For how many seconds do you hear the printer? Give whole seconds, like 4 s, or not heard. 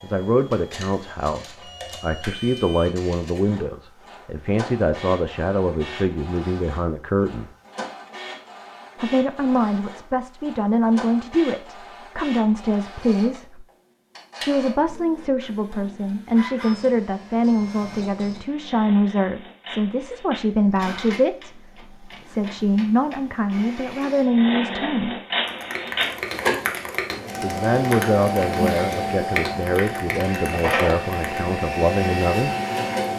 33 s.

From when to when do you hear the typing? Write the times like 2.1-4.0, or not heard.
25.4-31.4.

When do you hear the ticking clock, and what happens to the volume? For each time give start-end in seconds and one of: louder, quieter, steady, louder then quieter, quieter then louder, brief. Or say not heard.
not heard.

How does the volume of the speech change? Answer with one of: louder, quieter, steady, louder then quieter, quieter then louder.
steady.